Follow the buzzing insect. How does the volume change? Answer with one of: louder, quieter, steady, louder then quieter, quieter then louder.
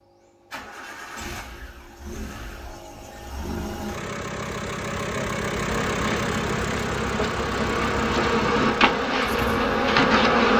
louder.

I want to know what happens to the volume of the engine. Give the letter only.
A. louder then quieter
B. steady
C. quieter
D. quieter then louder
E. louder
A.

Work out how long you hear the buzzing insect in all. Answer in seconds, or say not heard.
5 s.